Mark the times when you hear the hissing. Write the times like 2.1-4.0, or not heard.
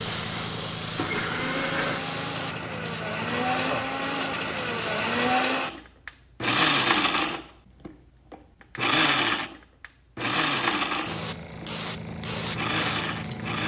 0.0-5.3, 11.1-13.6.